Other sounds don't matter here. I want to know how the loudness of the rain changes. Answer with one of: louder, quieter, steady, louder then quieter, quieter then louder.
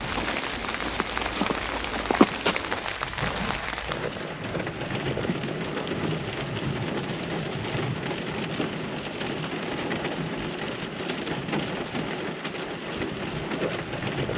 steady.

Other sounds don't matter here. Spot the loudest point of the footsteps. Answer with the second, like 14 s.
2 s.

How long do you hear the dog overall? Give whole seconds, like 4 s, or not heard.
not heard.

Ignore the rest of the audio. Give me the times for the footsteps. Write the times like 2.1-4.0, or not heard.
0.0-2.9.